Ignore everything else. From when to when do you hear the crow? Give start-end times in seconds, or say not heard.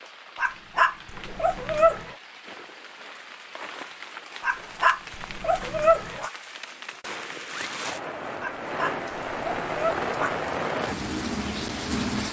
not heard.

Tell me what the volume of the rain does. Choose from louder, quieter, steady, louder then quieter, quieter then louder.
louder.